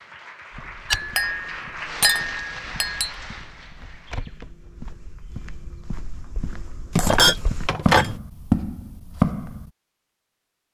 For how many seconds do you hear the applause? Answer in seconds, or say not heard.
4 s.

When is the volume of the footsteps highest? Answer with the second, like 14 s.
9 s.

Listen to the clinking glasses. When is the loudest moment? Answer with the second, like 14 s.
7 s.